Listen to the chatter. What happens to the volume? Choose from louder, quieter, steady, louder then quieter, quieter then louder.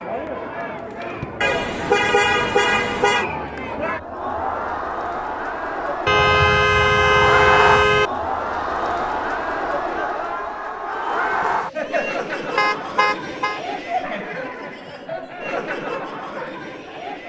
louder then quieter.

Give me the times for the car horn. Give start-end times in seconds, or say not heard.
1.4-3.2, 6.0-8.1, 12.6-13.6.